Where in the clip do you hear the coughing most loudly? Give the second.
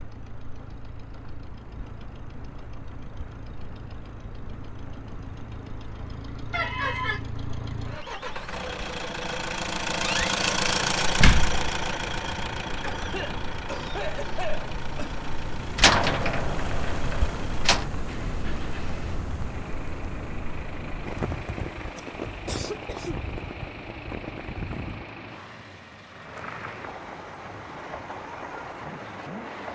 7 s.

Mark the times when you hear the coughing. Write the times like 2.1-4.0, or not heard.
6.5-7.2, 12.8-15.2, 21.9-23.2.